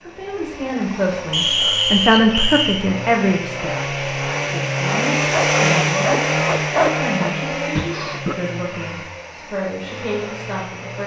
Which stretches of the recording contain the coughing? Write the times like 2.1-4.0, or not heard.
7.8-8.3.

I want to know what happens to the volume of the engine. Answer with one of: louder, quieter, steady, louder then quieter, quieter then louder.
louder then quieter.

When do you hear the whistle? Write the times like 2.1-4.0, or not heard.
1.3-2.8.